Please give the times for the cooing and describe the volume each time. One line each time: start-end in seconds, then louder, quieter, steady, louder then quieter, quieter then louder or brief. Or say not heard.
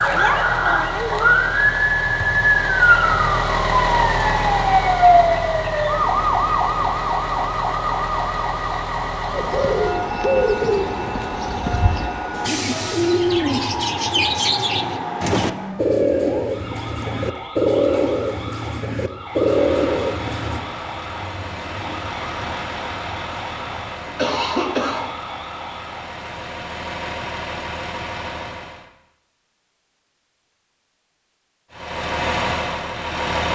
9.3-20.6 steady.